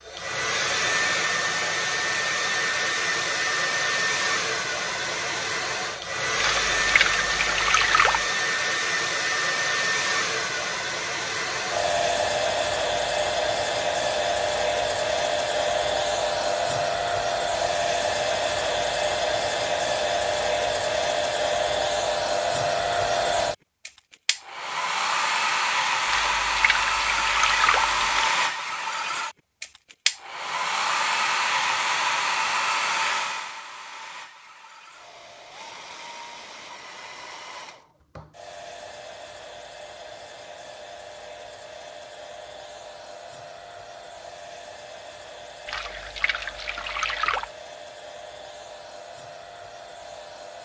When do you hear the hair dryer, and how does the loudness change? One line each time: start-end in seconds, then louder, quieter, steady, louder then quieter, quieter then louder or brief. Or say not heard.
0.0-50.6 quieter.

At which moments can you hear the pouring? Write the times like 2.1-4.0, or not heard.
6.3-8.2, 26.1-28.2, 45.6-47.5.